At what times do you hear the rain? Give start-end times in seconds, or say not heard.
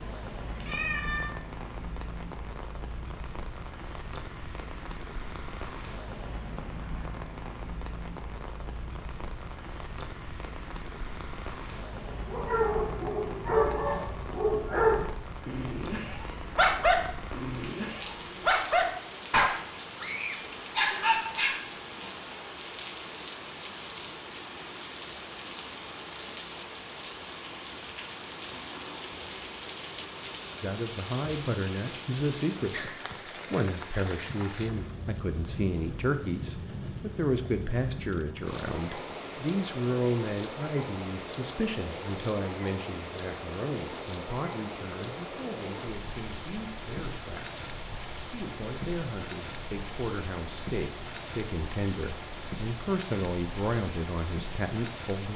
0.0-55.3.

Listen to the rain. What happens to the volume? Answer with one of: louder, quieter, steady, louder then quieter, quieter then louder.
steady.